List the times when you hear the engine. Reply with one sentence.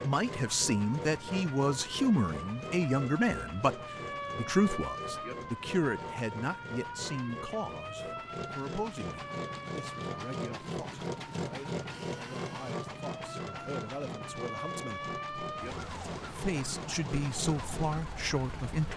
You can hear the engine from 0.0 to 18.9 s.